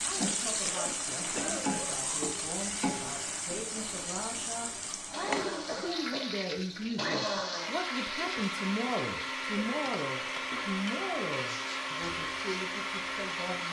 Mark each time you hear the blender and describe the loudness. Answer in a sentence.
The blender can be heard from 0.0 to 13.6 s, getting louder.